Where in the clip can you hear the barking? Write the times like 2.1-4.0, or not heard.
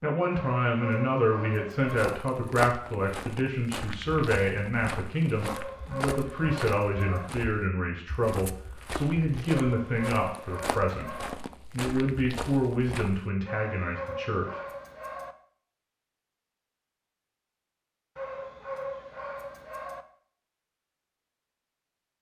0.3-2.1, 5.4-7.3, 9.4-11.3, 13.4-15.3, 18.1-20.1.